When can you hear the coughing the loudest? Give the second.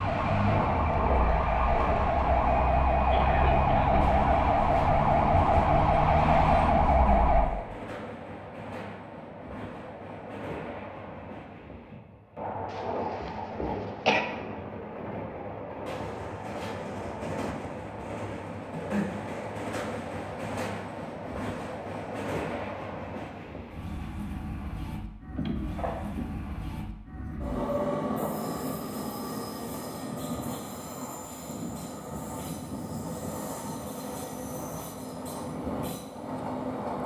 14 s.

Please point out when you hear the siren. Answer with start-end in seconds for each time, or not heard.
0.0-7.5.